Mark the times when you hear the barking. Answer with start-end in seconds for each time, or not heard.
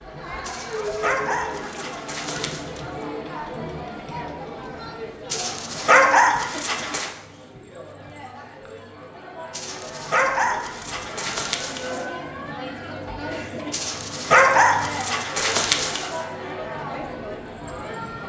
0.5-2.7, 5.3-7.1, 9.5-12.1, 13.7-16.1.